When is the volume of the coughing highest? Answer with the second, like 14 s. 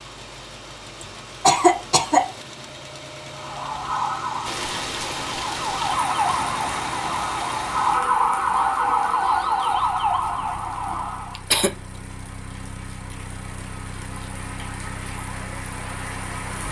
2 s.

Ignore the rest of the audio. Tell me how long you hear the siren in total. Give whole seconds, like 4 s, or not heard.
8 s.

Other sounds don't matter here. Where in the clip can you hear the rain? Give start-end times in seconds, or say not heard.
4.4-16.6.